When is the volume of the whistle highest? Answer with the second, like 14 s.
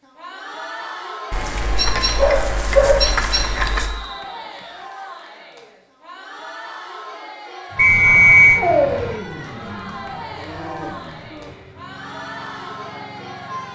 8 s.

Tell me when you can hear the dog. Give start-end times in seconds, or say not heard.
1.3-3.9, 8.6-11.5.